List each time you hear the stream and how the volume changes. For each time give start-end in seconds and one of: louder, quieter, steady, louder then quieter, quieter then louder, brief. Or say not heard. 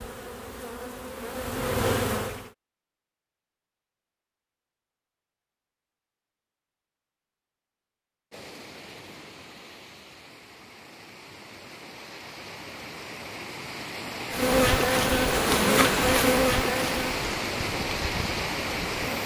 8.3-19.2 louder.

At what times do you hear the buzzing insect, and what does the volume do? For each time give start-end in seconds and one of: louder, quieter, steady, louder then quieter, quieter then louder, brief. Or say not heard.
0.0-2.5 brief
14.3-19.2 quieter.